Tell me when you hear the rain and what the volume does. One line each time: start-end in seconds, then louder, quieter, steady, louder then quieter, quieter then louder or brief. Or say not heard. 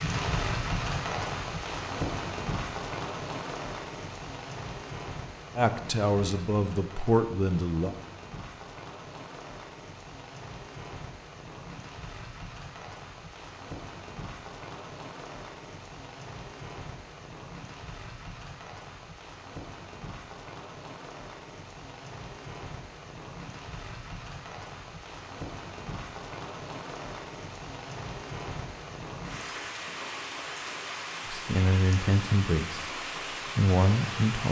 0.0-34.4 quieter then louder.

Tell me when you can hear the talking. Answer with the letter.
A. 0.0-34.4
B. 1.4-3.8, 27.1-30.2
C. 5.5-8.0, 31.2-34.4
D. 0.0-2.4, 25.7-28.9
C.